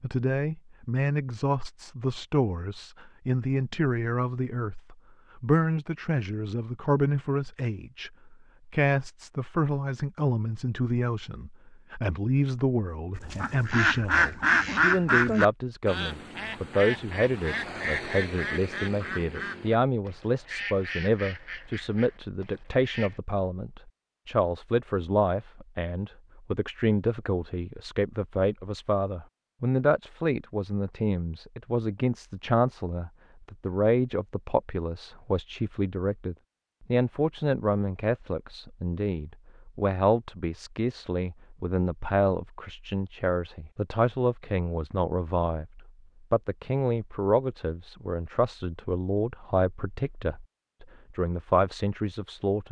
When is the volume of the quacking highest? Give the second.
15 s.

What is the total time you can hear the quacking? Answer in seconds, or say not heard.
10 s.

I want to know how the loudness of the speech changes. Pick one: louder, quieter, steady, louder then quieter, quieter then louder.
steady.